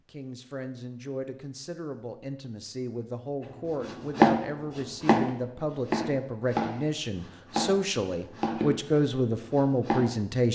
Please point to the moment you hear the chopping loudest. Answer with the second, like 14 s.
4 s.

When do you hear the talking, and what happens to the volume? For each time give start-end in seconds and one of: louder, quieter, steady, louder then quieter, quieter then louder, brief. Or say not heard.
0.1-10.5 louder.